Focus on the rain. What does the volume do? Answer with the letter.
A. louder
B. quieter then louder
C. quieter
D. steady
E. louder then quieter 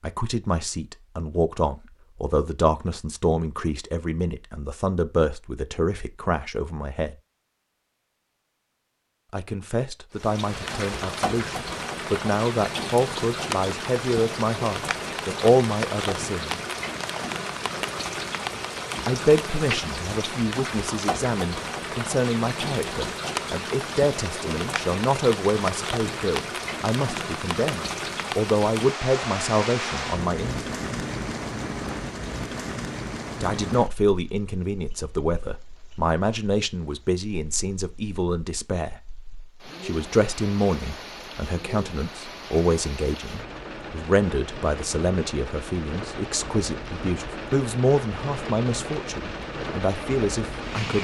B.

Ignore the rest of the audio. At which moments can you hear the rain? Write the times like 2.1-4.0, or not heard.
10.2-51.0.